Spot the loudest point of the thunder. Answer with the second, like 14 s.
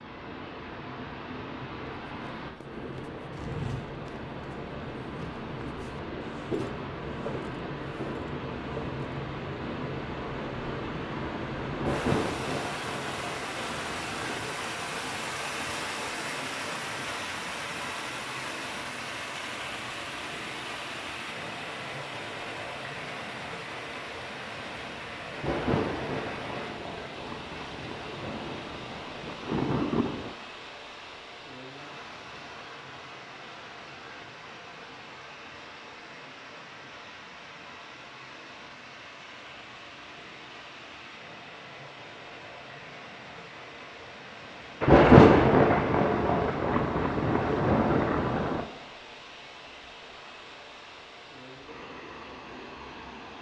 45 s.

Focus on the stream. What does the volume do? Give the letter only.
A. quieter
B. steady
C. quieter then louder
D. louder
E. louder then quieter
A.